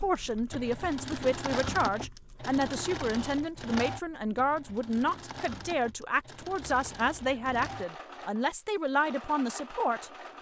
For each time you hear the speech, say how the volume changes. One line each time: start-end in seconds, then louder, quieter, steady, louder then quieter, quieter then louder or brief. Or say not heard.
0.0-10.1 steady.